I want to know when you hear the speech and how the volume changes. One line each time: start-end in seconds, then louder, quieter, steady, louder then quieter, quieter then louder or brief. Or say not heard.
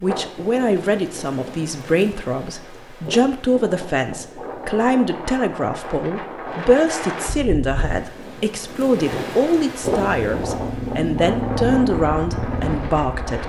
0.0-13.4 steady.